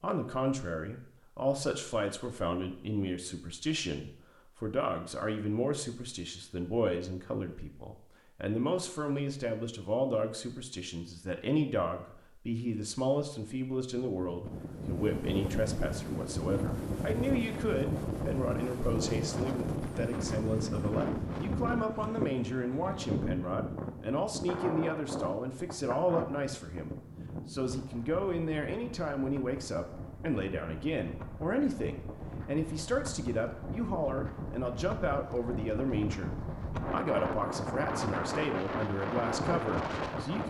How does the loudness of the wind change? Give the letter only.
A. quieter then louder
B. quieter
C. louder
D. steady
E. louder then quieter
A.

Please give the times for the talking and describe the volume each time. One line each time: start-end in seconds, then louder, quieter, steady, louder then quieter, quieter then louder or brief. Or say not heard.
0.0-40.4 steady.